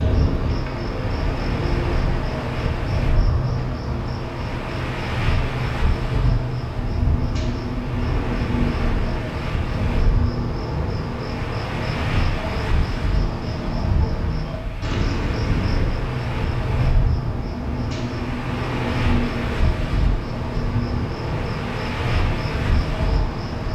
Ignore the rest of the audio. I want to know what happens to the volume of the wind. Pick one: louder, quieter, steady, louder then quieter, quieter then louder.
steady.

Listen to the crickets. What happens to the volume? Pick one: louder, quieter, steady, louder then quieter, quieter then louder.
steady.